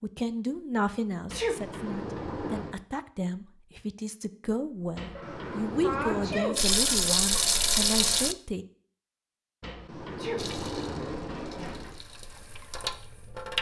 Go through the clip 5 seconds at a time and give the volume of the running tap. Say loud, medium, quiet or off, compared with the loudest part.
off, loud, quiet.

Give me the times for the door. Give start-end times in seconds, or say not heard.
1.2-2.9, 5.0-6.5, 9.6-12.1.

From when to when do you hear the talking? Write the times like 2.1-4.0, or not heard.
0.0-8.7.